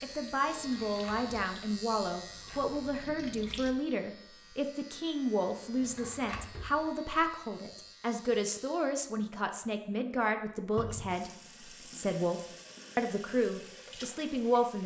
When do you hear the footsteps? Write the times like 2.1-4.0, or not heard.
not heard.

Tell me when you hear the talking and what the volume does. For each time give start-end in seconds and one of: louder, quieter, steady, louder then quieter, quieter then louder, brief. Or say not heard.
0.0-14.8 steady.